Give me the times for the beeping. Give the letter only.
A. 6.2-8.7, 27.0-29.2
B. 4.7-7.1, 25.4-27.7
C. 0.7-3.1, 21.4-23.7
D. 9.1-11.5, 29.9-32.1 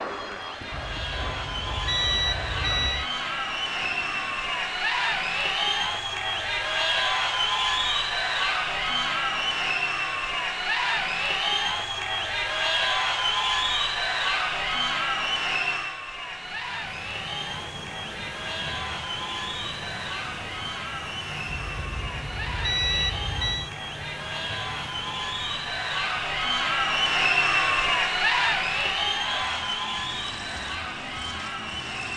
C.